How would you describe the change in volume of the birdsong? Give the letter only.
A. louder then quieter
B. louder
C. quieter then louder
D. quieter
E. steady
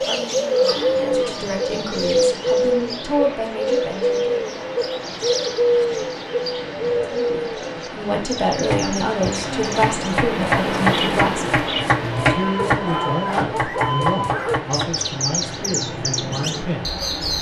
D.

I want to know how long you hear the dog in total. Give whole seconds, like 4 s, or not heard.
2 s.